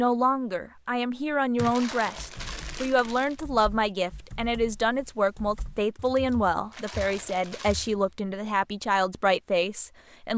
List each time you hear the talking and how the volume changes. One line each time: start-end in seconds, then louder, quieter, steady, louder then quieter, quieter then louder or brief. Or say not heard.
0.0-10.3 steady.